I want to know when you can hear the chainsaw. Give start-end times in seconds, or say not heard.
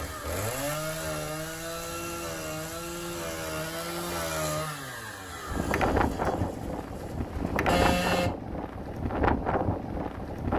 0.0-8.3.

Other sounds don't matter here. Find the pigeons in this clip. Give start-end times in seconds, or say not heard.
not heard.